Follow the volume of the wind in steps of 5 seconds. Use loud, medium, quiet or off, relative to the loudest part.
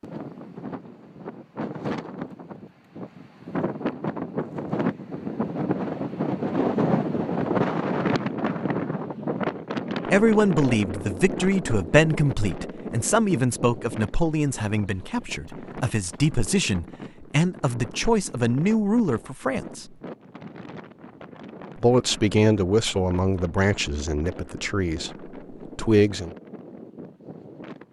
medium, loud, medium, quiet, quiet, quiet.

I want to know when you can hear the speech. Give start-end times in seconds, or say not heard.
10.1-19.9, 21.8-26.4.